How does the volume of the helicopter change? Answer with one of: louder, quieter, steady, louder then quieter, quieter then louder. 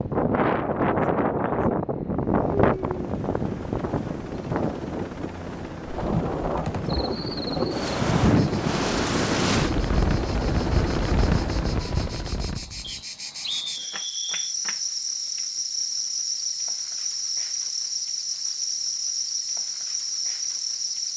louder.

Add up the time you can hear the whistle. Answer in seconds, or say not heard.
2 s.